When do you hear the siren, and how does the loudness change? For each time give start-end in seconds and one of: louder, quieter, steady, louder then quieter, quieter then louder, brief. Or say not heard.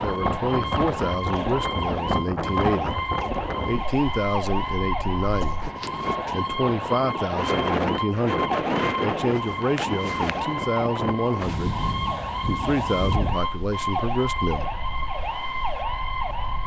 0.0-16.6 steady.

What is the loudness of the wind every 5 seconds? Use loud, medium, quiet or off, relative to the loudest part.
loud, loud, medium, quiet.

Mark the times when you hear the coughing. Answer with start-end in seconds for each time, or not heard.
5.4-6.2.